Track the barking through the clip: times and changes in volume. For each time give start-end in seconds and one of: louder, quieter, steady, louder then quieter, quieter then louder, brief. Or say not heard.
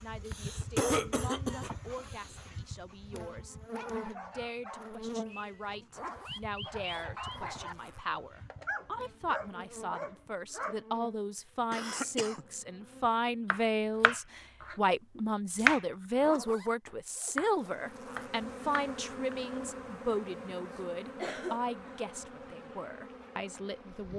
1.5-10.8 louder.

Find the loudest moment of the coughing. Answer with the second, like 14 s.
1 s.